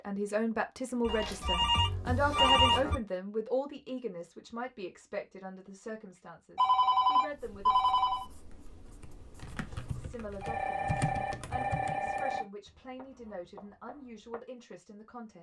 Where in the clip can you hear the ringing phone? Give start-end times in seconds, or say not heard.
1.1-3.0, 6.5-8.2, 10.4-12.4.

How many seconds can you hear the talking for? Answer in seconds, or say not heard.
13 s.